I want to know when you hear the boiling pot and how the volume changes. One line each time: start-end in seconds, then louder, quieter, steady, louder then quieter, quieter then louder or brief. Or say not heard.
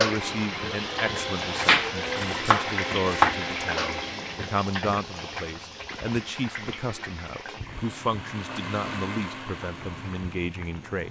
0.0-11.0 quieter.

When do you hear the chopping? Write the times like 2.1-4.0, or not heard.
1.6-3.4.